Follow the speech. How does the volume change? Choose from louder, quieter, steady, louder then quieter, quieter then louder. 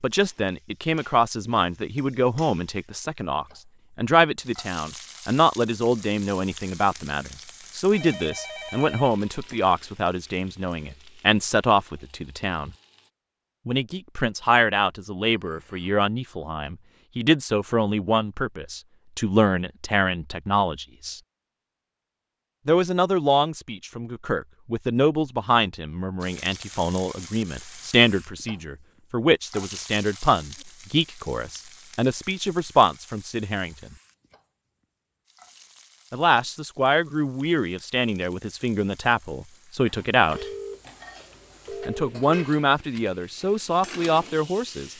steady.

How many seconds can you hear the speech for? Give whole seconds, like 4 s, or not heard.
39 s.